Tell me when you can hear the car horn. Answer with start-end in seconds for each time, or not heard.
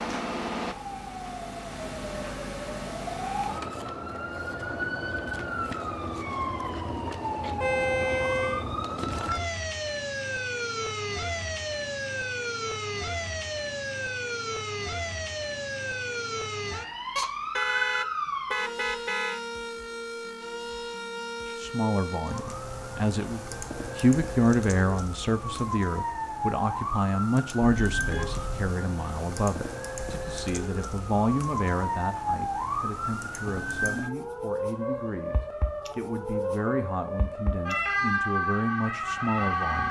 7.6-8.7, 17.1-19.4, 27.7-28.6.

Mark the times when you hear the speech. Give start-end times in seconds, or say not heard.
21.6-39.8.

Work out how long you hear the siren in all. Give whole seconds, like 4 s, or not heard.
40 s.